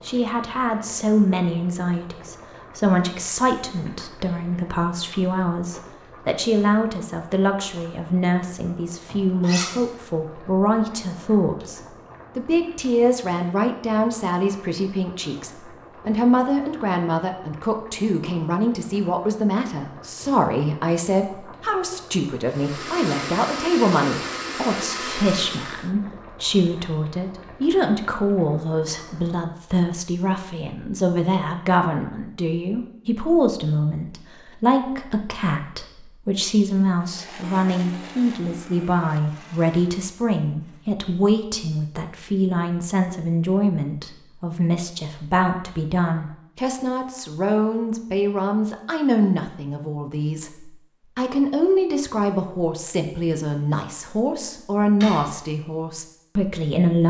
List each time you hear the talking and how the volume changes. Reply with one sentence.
The talking can be heard from 0.1 to 57.0 s, at a steady volume.